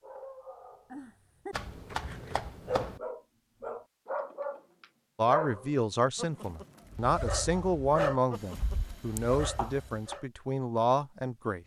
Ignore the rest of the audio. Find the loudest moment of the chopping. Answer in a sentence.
The loudest moment of the chopping is at 3 seconds.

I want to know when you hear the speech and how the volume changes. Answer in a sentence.
You can hear the speech from 5.2 to 11.6 s, at a steady volume.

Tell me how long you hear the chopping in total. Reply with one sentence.
The chopping can be heard for 3 seconds in total.